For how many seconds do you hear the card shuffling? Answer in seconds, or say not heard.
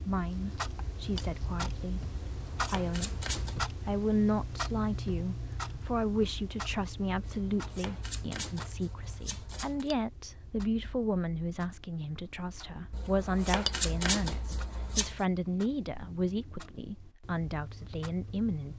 7 s.